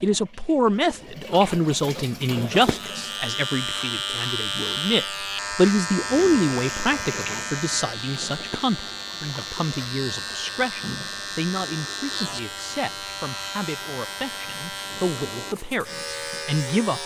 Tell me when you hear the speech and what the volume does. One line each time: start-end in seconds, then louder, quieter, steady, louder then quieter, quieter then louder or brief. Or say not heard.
0.0-17.0 quieter.